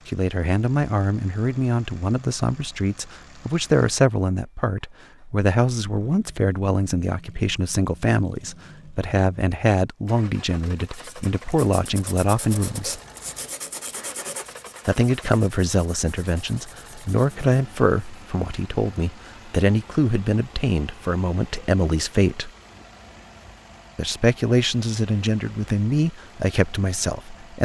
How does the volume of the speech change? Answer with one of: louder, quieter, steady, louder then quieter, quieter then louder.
steady.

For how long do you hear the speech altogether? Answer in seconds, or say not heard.
24 s.